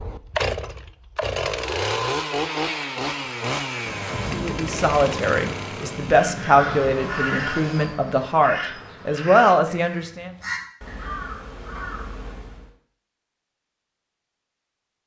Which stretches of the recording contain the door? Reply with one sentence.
The door can't be heard in this clip.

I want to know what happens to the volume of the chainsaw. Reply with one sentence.
The loudness of the chainsaw goes down.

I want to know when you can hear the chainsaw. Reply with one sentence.
You can hear the chainsaw from 0.0 to 8.0 s.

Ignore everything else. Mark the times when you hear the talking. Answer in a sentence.
You can hear the talking from 4.3 to 10.3 s.